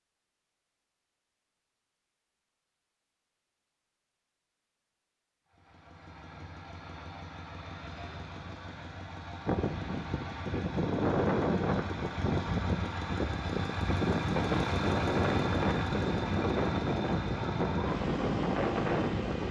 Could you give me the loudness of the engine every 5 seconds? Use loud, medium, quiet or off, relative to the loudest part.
off, medium, loud, loud.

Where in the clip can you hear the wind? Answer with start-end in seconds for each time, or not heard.
9.4-19.4.